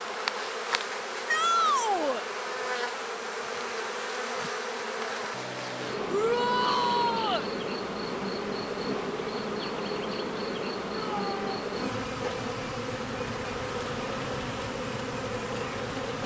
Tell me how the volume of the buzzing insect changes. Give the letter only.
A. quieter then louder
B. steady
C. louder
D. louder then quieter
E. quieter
B.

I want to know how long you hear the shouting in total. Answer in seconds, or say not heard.
3 s.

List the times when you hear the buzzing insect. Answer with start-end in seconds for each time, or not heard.
0.0-16.2.